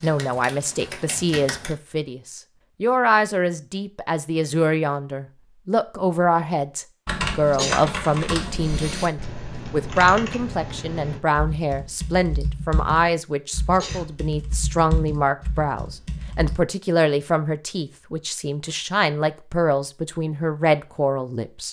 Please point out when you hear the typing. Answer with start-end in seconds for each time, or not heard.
0.0-1.8, 7.0-16.6.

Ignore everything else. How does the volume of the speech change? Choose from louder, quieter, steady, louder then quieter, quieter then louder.
steady.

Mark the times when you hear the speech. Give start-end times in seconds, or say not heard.
0.0-21.6.